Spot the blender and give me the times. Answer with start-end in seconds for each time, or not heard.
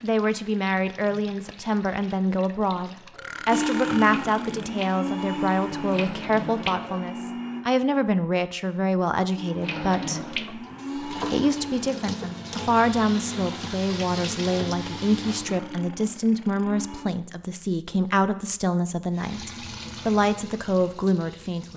3.5-7.7, 9.3-17.1.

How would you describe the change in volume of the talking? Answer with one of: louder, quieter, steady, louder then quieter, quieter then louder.
steady.